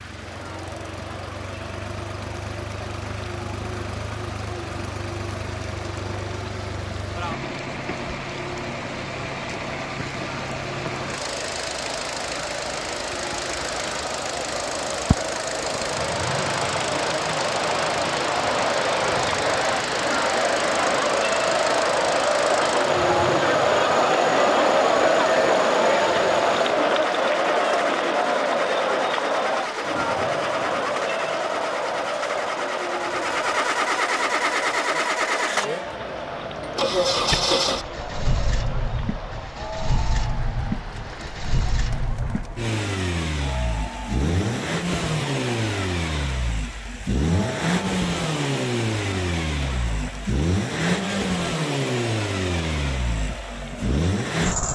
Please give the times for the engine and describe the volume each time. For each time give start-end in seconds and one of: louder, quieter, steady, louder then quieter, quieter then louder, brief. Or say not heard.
0.0-54.7 louder.